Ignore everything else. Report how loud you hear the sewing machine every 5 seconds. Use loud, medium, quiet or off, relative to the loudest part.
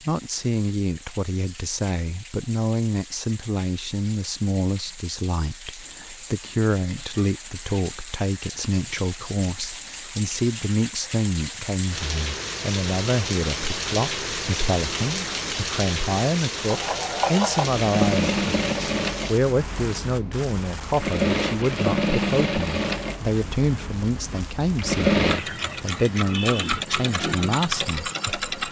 off, off, off, loud, loud, loud.